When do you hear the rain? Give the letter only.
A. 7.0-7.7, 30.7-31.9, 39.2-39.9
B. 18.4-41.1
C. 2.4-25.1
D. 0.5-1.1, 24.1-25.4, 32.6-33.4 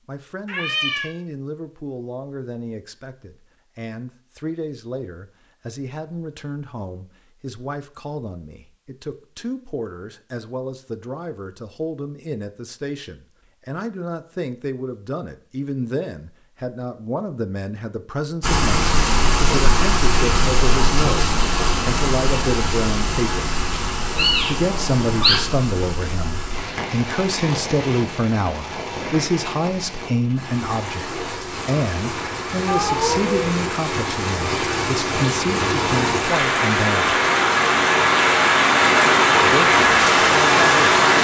B.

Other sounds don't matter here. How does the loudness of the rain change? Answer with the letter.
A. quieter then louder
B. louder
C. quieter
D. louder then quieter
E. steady
A.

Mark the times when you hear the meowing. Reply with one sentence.
The meowing can be heard from 0.5 to 1.1 s, from 24.1 to 25.4 s and from 32.6 to 33.4 s.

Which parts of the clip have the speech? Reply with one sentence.
The speech can be heard from 0.1 to 23.5 s, from 24.4 to 37.1 s and from 39.4 to 41.0 s.